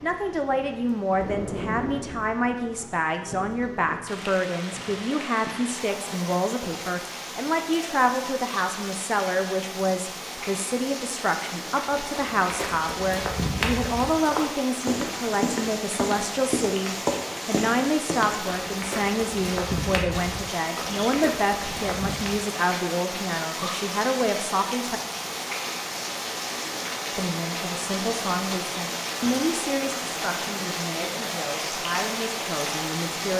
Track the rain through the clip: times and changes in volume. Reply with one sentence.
The rain can be heard from 0.0 to 33.3 s, getting louder.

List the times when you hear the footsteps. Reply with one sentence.
The footsteps can be heard from 11.9 to 22.4 s.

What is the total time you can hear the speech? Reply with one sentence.
The speech can be heard for 31 seconds in total.